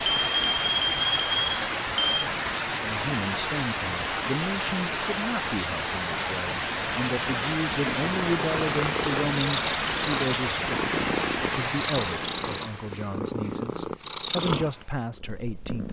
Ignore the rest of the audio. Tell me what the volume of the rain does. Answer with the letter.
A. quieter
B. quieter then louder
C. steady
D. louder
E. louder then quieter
C.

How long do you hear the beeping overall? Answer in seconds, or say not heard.
2 s.